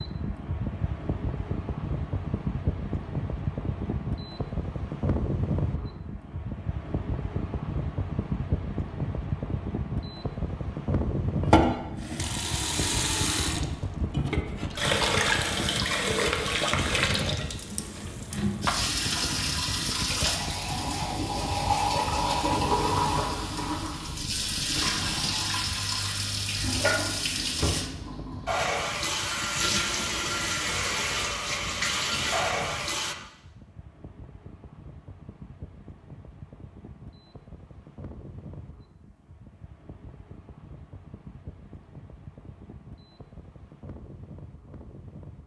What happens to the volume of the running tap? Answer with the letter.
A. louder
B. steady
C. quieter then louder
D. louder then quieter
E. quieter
B.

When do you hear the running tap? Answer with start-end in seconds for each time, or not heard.
11.4-33.1.